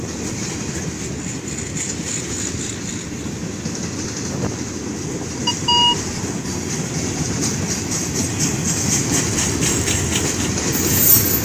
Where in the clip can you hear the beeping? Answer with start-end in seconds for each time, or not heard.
5.5-6.2.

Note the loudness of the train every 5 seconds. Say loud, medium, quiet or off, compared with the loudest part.
medium, loud, loud.